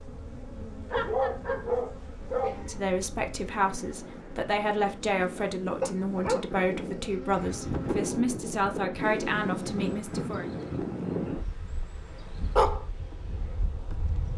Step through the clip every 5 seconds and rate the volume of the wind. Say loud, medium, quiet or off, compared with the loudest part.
quiet, loud, loud.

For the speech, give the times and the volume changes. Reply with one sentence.
The speech can be heard from 2.6 to 10.4 s, at a steady volume.